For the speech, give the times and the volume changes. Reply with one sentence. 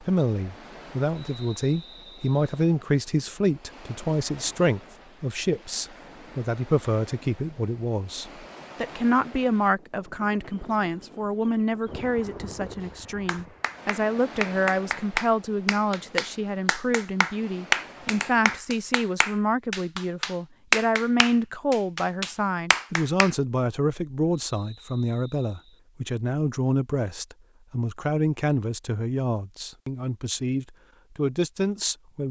You can hear the speech from 0.0 to 32.2 s, at a steady volume.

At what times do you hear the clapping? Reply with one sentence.
You can hear the clapping from 12.8 to 23.4 s.